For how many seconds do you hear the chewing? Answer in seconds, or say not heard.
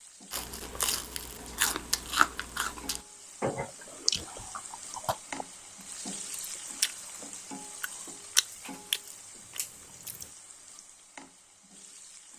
9 s.